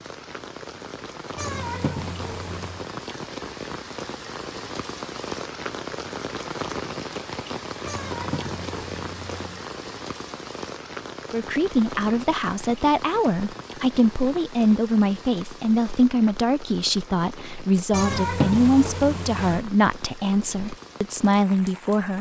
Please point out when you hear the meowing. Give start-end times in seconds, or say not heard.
1.4-2.9, 7.8-9.7, 17.9-19.6.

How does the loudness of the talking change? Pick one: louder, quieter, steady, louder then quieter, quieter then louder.
steady.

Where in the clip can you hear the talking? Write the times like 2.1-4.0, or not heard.
11.3-22.1.